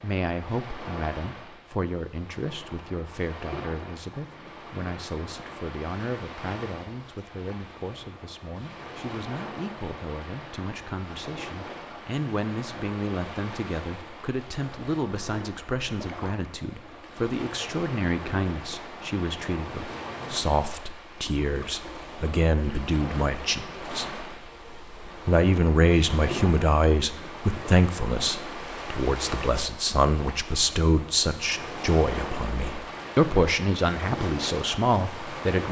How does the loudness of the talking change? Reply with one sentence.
The volume of the talking goes up.